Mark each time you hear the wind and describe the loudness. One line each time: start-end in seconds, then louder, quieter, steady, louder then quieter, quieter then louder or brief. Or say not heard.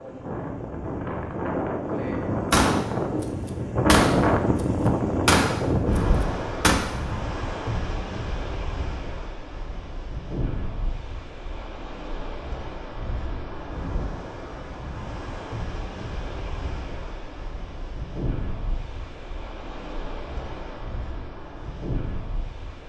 0.0-22.8 quieter.